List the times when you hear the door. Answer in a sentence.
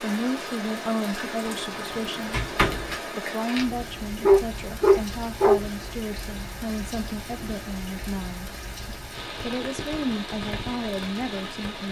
You can hear the door from 1.4 to 3.0 s.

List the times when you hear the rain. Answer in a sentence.
The rain can be heard from 0.0 to 11.8 s.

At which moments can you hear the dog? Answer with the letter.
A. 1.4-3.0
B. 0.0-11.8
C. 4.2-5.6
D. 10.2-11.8
C.